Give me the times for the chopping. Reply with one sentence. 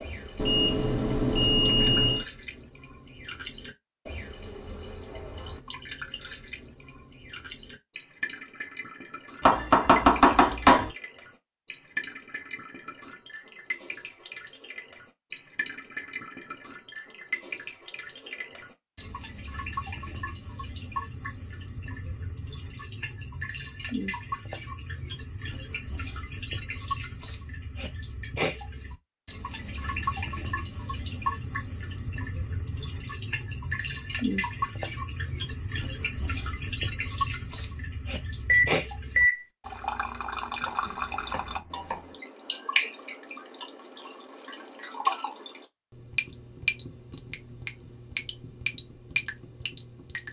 The chopping can be heard from 9.4 to 10.9 s and from 40.6 to 42.0 s.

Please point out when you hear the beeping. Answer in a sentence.
The beeping can be heard from 0.3 to 2.2 s and from 38.5 to 39.5 s.